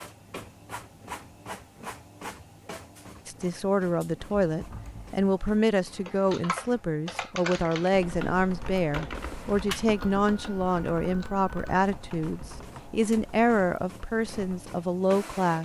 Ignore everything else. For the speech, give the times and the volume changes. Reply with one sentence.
You can hear the speech from 3.2 to 15.6 s, at a steady volume.